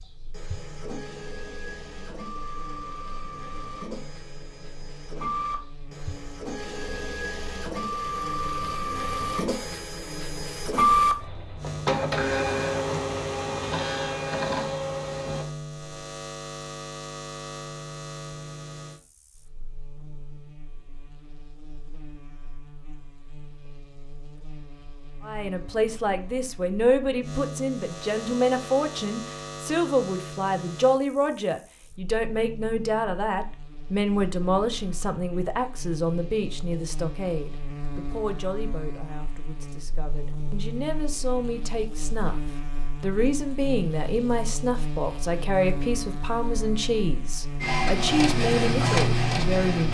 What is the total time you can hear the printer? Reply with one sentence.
You can hear the printer for 18 seconds altogether.